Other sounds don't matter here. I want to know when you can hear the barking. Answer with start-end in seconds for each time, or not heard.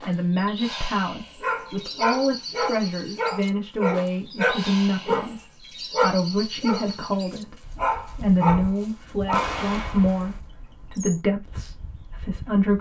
1.4-5.3, 5.9-9.6.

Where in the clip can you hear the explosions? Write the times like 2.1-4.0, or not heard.
9.3-10.4.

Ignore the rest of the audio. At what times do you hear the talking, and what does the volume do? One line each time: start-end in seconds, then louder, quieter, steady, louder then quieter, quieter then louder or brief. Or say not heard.
0.0-12.7 steady.